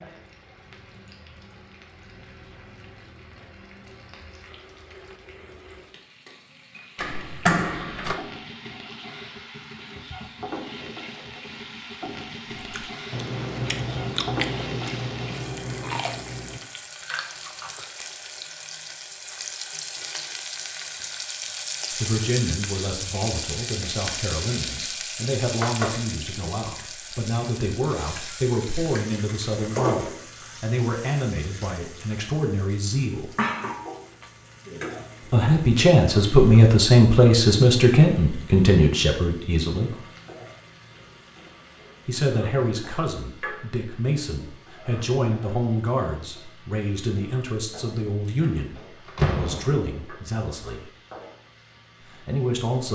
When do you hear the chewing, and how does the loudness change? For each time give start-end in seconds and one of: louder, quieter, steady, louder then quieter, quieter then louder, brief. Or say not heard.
12.6-17.9 quieter.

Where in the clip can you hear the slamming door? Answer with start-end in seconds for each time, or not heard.
7.0-8.2, 48.4-50.0.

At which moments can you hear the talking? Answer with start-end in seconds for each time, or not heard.
21.9-33.3, 35.3-40.0, 42.0-50.9, 52.0-52.9.